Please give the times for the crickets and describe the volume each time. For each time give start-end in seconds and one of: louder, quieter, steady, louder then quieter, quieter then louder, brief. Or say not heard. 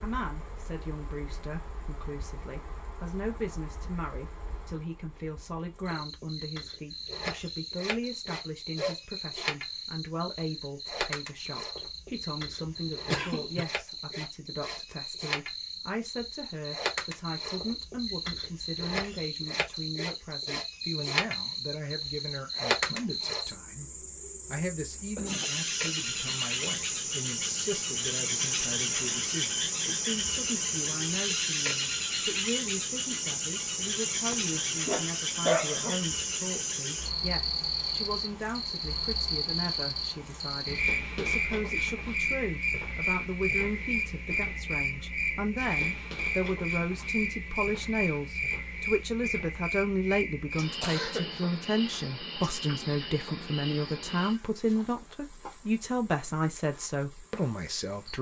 0.0-58.1 louder then quieter.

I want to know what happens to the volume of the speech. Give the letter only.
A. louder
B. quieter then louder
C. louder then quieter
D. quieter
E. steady
A.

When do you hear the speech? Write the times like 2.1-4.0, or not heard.
0.0-58.1.